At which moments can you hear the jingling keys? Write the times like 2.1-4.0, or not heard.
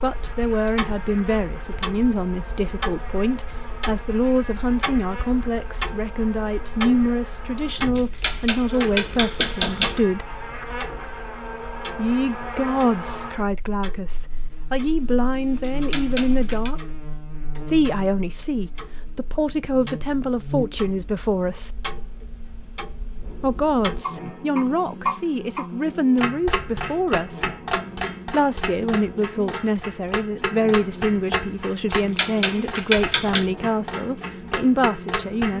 8.0-9.9, 15.6-16.7, 31.9-33.5.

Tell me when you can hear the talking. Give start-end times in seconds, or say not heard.
0.0-10.4, 11.9-16.9, 17.6-21.7, 23.4-27.5, 28.3-35.5.